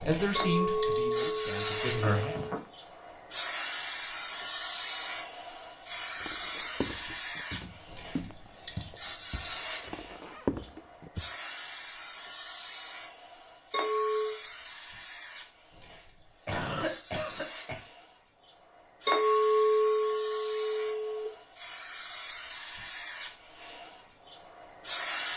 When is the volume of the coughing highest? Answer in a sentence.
The loudest moment of the coughing is at 17 seconds.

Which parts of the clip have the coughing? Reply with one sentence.
You can hear the coughing from 2.0 to 2.6 s and from 16.4 to 17.8 s.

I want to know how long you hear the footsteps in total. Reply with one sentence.
The footsteps can be heard for 5 seconds in total.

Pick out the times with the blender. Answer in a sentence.
The blender can't be heard in this clip.